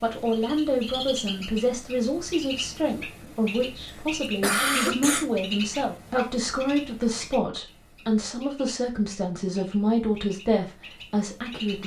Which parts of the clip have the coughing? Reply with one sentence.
The coughing can be heard from 4.2 to 5.3 s.